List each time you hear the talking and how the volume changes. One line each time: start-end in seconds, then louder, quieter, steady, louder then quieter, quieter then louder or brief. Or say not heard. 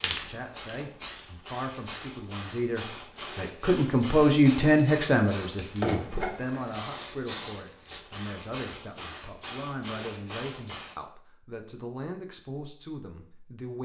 0.1-13.8 louder then quieter.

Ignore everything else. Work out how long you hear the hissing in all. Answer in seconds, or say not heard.
11 s.